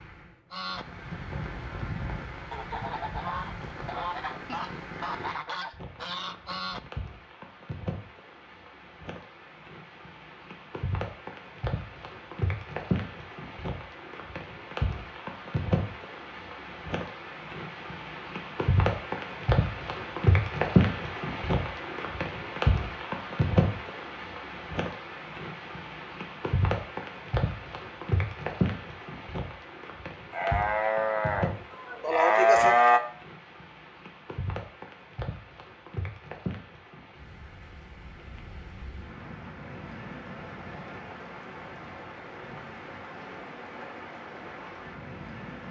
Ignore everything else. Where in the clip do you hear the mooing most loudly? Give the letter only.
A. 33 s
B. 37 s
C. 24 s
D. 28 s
A.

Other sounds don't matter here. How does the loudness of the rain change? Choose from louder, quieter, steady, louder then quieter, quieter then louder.
louder then quieter.